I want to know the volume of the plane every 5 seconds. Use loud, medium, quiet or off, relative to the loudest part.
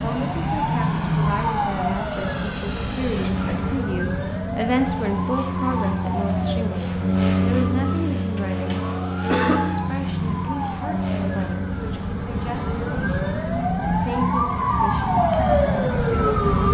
medium, loud, medium, quiet.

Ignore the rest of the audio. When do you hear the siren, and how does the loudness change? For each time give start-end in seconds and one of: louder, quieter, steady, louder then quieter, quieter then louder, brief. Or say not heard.
0.0-16.6 quieter then louder.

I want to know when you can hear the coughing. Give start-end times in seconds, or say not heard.
3.1-3.8, 9.2-9.8.